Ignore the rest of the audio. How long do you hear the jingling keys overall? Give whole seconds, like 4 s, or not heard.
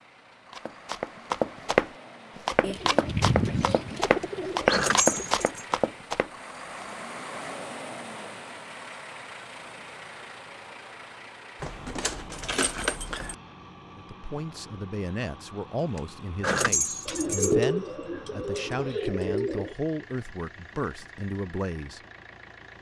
5 s.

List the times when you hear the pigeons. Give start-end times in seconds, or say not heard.
2.6-5.5, 17.1-19.8.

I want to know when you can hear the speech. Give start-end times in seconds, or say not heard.
13.9-22.0.